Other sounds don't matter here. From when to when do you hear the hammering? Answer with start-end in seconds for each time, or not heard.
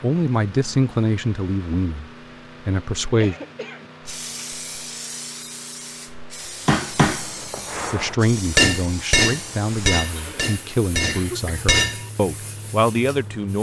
6.7-12.1.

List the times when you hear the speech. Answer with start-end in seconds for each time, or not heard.
0.0-3.4, 7.9-13.5.